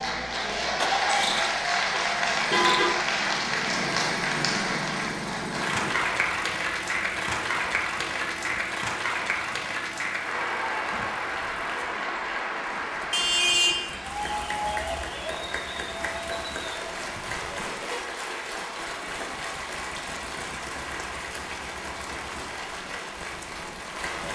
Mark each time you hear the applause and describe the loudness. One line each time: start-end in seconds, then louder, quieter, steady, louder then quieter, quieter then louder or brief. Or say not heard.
0.0-24.2 quieter.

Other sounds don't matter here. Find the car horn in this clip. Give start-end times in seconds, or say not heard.
1.9-2.9, 13.1-13.8, 17.1-18.1.